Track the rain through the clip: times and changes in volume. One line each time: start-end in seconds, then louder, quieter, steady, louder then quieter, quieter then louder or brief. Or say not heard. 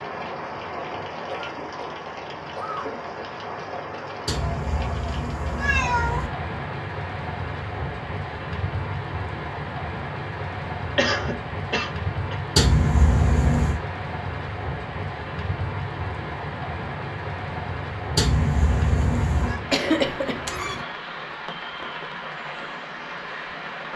0.0-23.9 steady.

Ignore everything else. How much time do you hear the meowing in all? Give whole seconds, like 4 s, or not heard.
5 s.